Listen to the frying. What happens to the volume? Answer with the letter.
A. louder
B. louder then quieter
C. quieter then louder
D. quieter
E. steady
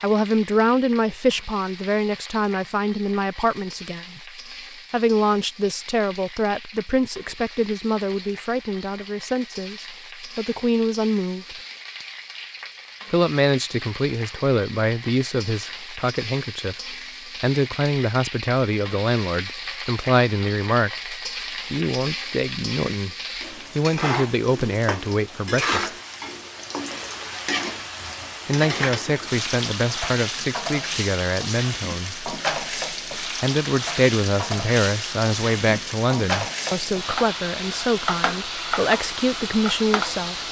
A.